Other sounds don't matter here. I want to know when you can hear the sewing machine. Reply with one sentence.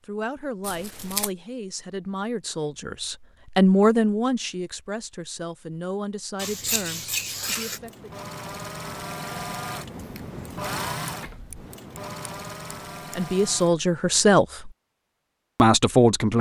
You can hear the sewing machine from 7.7 to 13.8 s.